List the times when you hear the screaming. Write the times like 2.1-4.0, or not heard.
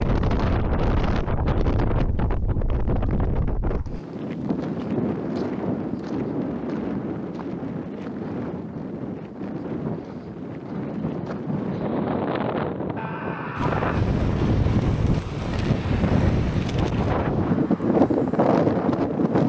12.9-14.1.